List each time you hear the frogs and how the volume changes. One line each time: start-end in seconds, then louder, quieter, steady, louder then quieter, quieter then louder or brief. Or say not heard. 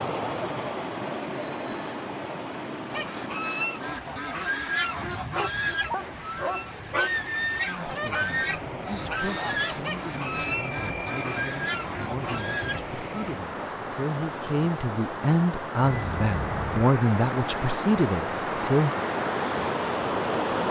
not heard.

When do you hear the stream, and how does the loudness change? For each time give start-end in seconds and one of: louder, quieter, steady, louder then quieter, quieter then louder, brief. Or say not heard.
0.0-20.6 quieter then louder.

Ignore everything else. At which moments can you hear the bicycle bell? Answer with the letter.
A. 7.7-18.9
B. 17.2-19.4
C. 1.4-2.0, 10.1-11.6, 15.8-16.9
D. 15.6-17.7
C.